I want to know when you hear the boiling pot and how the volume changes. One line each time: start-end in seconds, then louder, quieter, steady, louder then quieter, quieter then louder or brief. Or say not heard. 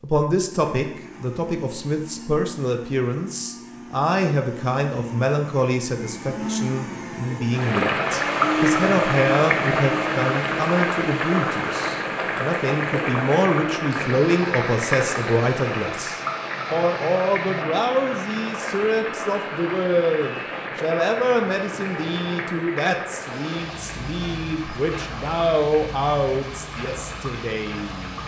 7.5-28.2 quieter.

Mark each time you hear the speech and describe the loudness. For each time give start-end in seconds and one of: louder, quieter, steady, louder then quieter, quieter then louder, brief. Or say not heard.
0.0-28.2 steady.